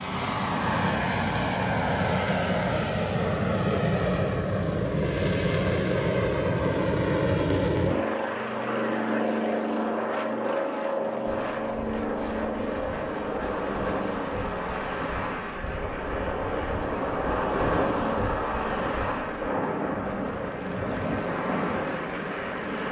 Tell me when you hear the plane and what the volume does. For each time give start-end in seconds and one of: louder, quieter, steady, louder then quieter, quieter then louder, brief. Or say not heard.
0.0-22.8 quieter.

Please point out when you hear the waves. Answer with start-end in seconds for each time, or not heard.
11.2-22.8.